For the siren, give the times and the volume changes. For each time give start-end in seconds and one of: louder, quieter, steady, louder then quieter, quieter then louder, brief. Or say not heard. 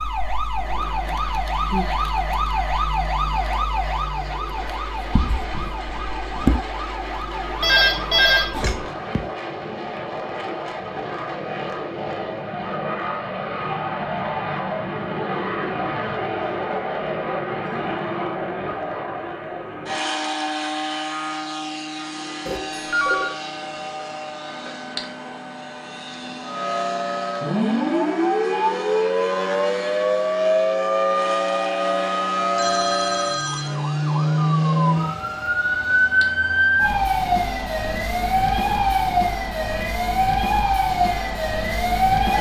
0.0-8.8 quieter
26.4-42.3 steady.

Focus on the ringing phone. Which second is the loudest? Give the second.
8 s.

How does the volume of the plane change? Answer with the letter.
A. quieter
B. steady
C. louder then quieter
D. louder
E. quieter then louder
C.